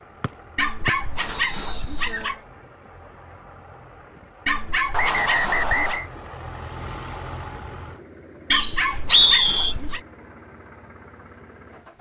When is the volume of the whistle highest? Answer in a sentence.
The loudest moment of the whistle is at 9 seconds.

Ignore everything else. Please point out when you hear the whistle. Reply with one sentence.
The whistle can be heard from 0.2 to 1.9 s, from 4.9 to 6.0 s and from 8.5 to 9.8 s.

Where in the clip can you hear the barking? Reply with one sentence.
The barking can be heard from 0.6 to 2.4 s, from 4.5 to 6.0 s and from 8.5 to 10.0 s.